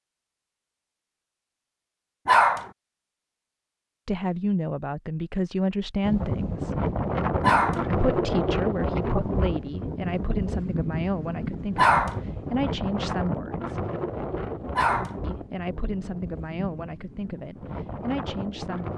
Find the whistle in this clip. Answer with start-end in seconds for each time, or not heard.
not heard.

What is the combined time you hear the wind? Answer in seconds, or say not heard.
13 s.